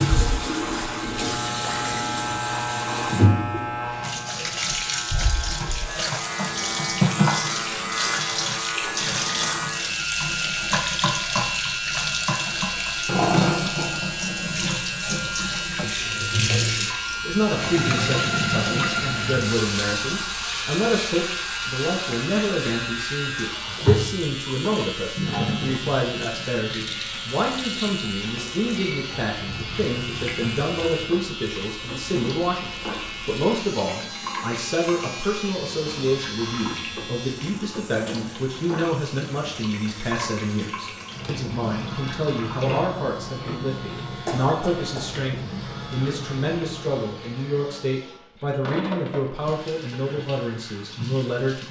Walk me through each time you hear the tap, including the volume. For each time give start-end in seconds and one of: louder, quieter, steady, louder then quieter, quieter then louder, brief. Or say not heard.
0.0-51.6 quieter.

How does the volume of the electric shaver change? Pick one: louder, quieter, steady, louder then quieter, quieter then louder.
quieter.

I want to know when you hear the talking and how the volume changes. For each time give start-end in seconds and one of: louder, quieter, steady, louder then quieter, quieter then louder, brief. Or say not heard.
16.8-51.6 steady.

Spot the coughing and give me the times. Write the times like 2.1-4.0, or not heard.
44.2-45.1.